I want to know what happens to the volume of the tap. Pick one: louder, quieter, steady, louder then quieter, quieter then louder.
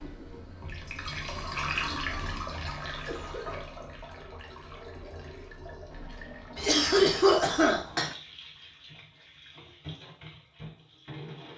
quieter.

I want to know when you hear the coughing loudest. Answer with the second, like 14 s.
7 s.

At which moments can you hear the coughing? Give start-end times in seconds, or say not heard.
2.5-3.5, 6.5-8.1.